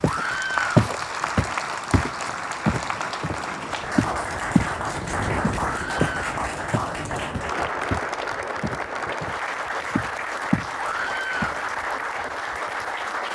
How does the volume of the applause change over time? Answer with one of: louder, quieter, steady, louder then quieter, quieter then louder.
steady.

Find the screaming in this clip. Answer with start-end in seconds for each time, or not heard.
0.0-0.8, 5.6-6.3, 10.8-11.6.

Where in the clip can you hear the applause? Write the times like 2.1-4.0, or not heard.
0.0-13.3.